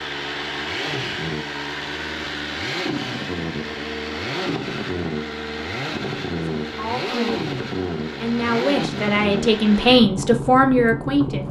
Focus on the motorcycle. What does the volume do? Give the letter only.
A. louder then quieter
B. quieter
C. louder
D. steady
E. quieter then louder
D.